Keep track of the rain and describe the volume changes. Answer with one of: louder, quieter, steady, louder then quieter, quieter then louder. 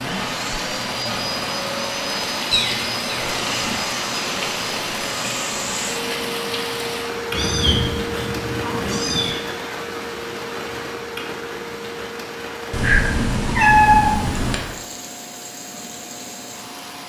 quieter.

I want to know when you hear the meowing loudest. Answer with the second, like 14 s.
14 s.